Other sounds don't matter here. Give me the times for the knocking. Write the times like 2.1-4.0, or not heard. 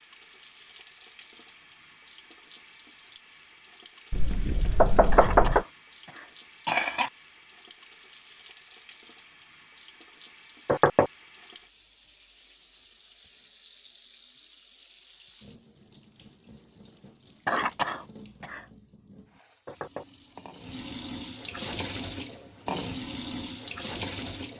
4.1-5.7, 10.7-11.1, 19.6-20.1.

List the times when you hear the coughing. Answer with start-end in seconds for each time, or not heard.
5.1-7.1, 17.4-18.6.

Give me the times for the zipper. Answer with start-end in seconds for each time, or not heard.
not heard.